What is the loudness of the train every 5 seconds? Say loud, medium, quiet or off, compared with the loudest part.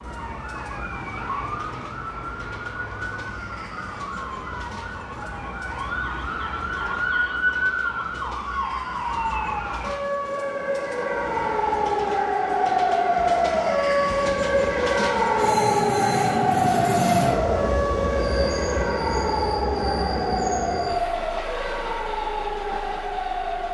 quiet, quiet, medium, loud, medium.